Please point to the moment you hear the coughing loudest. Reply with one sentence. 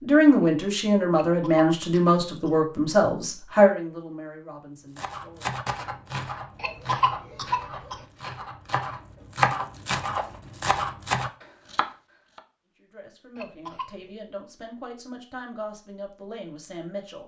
The loudest moment of the coughing is at 7 seconds.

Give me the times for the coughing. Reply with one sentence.
The coughing can be heard from 1.1 to 2.5 s, from 6.5 to 8.1 s and from 13.3 to 14.1 s.